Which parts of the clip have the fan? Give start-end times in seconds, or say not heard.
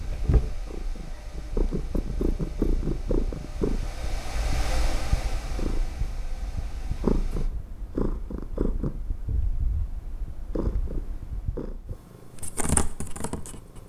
0.0-7.5.